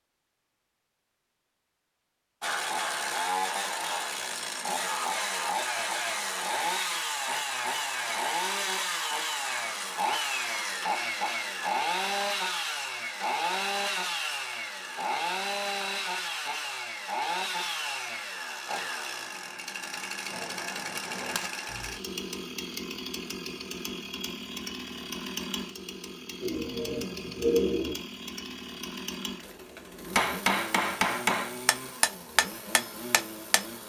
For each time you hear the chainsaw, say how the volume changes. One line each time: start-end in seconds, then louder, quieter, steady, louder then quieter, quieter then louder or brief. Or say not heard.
2.4-33.8 quieter.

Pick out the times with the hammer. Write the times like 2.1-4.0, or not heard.
20.2-21.9, 30.1-33.6.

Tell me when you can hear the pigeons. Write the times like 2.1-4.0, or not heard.
26.4-27.9.